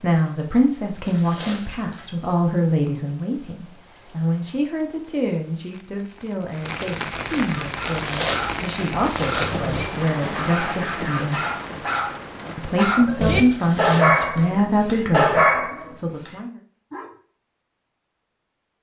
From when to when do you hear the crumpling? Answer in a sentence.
You can hear the crumpling from 1.1 to 2.3 s, from 7.8 to 9.7 s and from 13.5 to 14.4 s.